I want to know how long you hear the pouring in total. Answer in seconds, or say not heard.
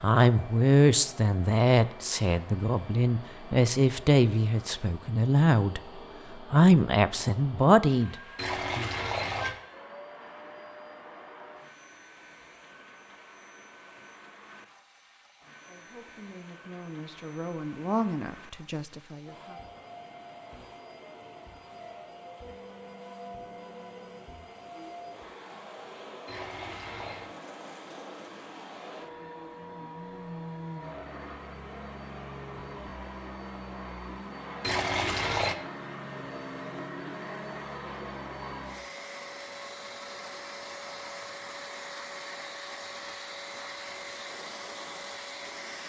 3 s.